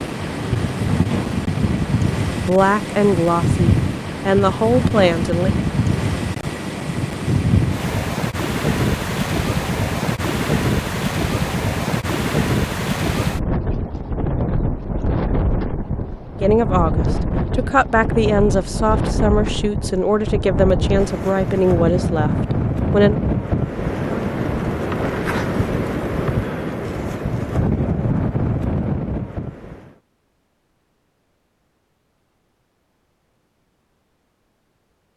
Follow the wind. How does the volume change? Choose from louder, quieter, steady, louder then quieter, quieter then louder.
steady.